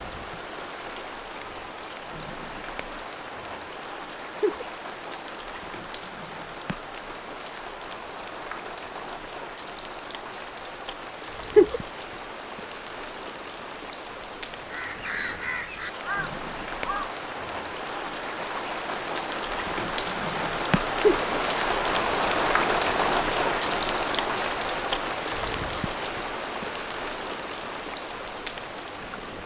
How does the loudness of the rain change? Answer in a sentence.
The loudness of the rain goes up.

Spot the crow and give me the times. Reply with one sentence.
You can hear the crow from 14.6 to 17.1 s.